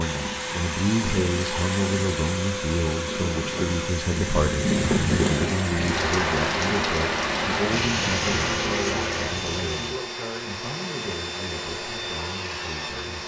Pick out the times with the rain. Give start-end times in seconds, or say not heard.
0.1-9.9.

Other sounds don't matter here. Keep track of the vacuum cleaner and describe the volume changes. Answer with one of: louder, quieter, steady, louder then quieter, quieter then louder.
steady.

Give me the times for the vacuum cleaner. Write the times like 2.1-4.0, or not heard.
0.0-13.2.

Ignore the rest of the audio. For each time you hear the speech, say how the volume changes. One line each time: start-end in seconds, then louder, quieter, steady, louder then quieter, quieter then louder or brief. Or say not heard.
0.0-13.2 quieter.